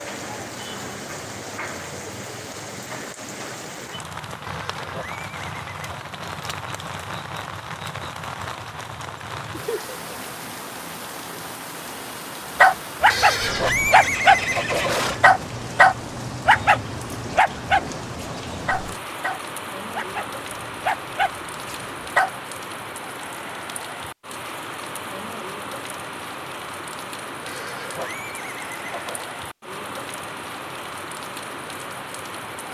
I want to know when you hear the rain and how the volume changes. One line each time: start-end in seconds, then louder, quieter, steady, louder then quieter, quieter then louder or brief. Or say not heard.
0.0-32.6 steady.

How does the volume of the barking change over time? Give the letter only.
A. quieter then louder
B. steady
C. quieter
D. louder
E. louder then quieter
A.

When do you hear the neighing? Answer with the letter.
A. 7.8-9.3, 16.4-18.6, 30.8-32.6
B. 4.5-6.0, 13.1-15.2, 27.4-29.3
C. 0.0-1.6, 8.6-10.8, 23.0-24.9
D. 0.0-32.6
B.